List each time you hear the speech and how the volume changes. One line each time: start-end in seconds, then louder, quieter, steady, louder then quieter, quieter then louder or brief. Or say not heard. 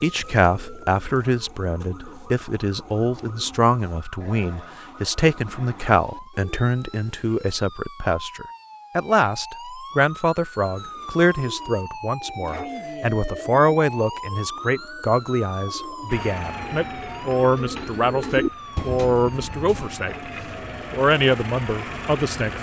0.0-20.2 steady
20.9-22.5 brief.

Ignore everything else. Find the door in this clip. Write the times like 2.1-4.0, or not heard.
not heard.